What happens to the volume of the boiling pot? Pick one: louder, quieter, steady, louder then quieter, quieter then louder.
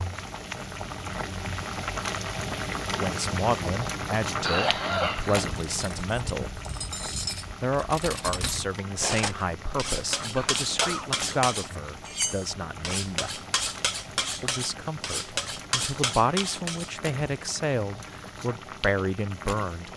quieter.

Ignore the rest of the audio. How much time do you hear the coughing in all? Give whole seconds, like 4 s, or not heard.
2 s.